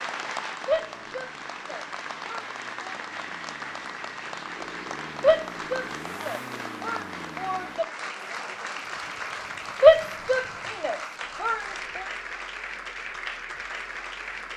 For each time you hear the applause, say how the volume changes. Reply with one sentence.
The applause can be heard from 0.0 to 14.5 s, at a steady volume.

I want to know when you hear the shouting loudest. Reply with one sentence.
The volume of the shouting peaks at 10 seconds.